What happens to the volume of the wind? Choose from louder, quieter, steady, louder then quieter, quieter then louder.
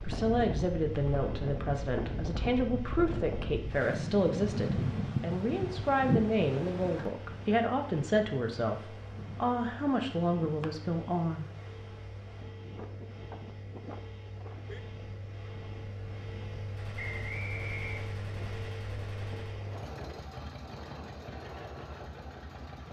quieter.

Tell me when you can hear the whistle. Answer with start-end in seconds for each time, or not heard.
16.9-18.1.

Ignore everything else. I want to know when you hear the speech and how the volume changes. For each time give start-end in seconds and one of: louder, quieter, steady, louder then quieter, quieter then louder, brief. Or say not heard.
0.0-11.4 steady.